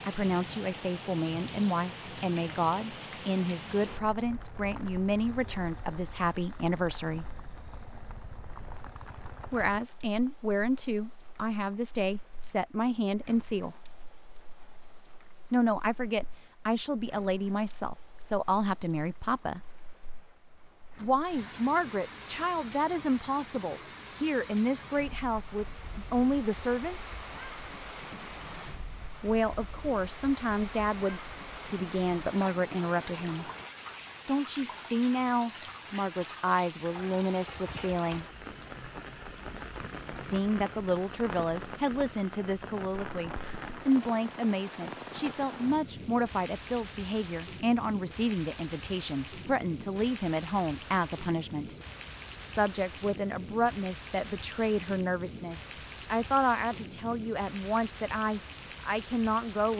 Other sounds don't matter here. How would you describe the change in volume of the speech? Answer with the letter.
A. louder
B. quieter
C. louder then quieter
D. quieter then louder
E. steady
E.